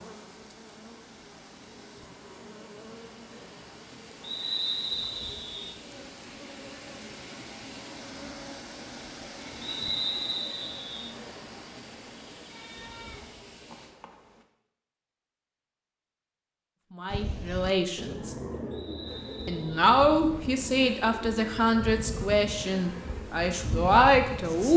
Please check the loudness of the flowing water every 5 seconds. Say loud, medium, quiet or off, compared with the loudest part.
medium, loud, loud, off, off.